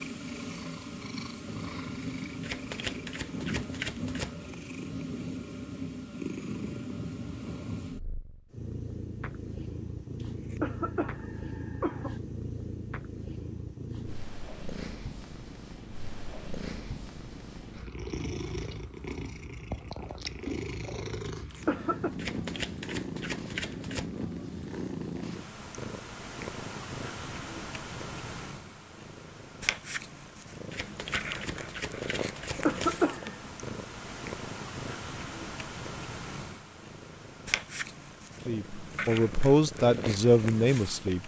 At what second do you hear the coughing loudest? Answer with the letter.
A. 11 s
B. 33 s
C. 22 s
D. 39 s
B.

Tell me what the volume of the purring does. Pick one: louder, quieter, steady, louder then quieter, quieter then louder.
steady.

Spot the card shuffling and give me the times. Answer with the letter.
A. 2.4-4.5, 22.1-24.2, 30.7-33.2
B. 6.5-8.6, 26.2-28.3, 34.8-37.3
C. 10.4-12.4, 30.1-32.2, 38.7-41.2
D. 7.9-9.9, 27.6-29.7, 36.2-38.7
A.